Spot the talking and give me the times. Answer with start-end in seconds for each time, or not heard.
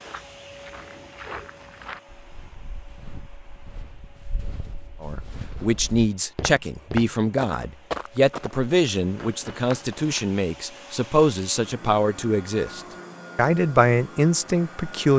5.0-15.1.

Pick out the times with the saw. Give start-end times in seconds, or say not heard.
not heard.